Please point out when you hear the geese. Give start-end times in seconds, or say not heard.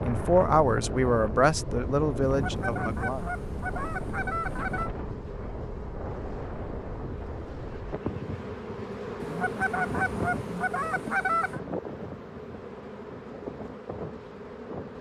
2.2-4.9, 9.2-11.6.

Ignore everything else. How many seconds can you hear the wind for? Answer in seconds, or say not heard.
15 s.